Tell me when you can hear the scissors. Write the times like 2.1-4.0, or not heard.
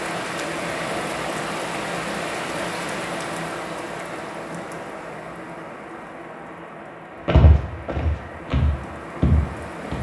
not heard.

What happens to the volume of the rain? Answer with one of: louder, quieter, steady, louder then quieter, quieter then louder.
quieter.